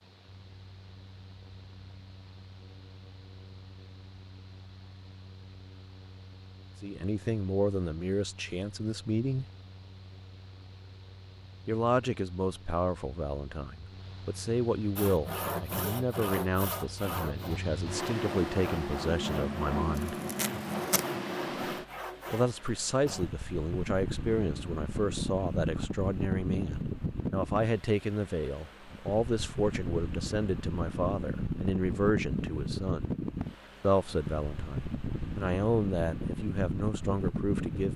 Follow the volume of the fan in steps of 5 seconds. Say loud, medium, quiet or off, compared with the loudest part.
quiet, quiet, quiet, loud, loud, loud, loud, loud.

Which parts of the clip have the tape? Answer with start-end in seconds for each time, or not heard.
19.9-21.1.